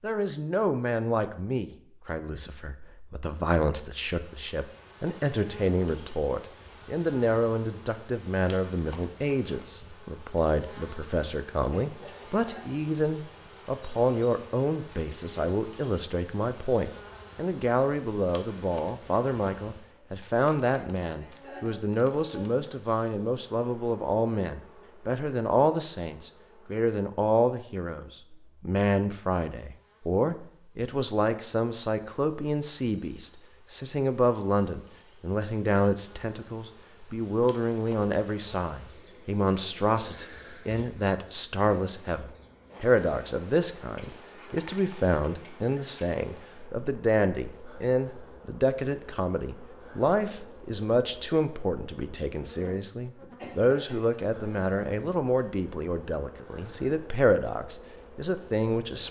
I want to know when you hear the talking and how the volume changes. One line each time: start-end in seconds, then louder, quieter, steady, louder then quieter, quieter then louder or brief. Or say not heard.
0.0-59.0 steady.